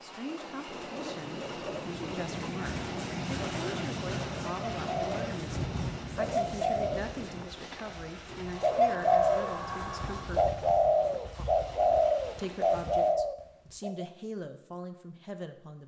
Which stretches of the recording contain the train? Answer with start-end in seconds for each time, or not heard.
0.0-13.2.